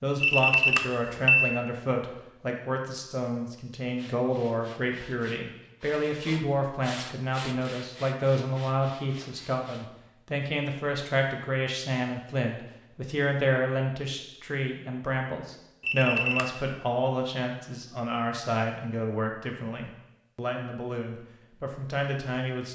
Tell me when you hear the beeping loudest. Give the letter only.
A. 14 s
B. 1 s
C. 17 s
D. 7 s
B.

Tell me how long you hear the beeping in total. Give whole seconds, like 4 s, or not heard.
2 s.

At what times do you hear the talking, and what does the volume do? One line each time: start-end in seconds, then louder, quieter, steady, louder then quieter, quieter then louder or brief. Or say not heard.
0.0-22.6 steady.